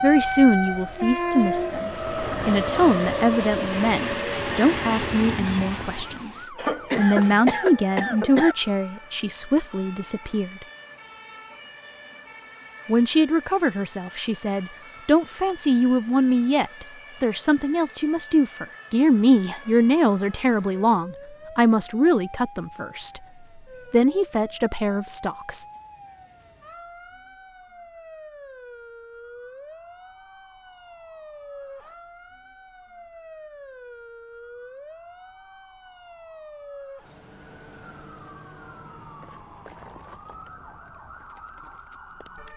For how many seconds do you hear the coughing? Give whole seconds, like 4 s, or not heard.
2 s.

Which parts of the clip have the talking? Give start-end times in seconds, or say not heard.
0.0-10.6, 12.8-23.2, 23.9-25.6.